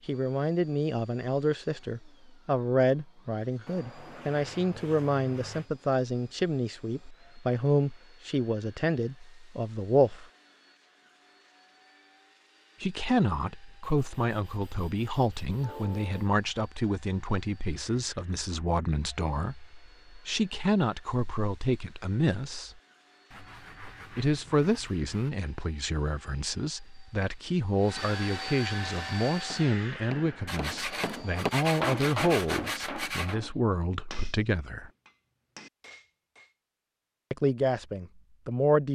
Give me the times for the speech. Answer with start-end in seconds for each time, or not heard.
0.1-10.2, 12.8-22.8, 24.1-34.9, 37.3-38.8.